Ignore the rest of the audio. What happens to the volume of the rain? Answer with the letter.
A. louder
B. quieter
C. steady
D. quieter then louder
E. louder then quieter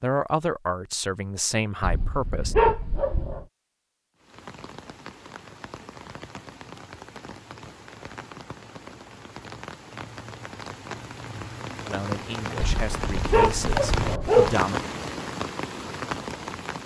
A.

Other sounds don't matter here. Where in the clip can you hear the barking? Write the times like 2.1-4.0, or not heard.
1.8-3.5, 12.6-14.6.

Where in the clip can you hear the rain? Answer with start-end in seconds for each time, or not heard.
4.2-16.8.